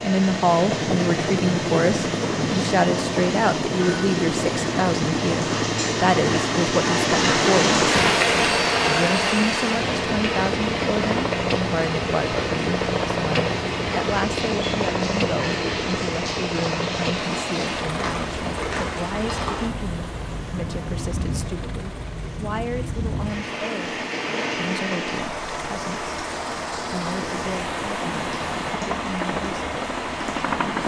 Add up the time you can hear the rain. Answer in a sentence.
You can hear the rain for 31 seconds altogether.